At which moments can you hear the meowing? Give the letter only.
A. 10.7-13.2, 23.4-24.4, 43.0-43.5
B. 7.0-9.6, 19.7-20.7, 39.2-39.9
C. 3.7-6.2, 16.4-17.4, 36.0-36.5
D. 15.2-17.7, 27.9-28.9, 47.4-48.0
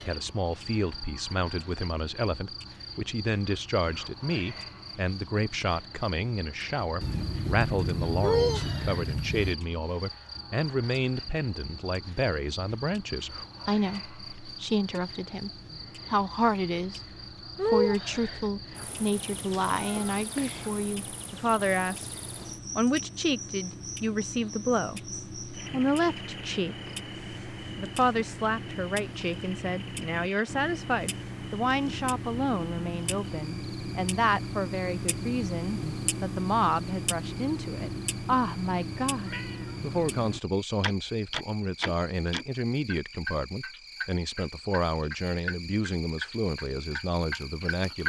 B.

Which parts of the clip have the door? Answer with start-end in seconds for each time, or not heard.
not heard.